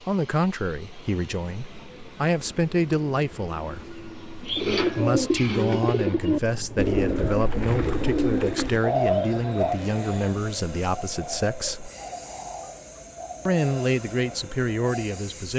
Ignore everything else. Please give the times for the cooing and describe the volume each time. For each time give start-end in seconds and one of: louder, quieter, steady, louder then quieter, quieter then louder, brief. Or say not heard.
4.5-15.3 quieter.